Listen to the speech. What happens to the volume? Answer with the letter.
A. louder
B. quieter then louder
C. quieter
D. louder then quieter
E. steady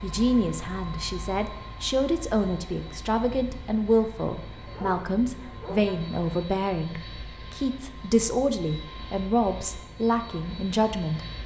E.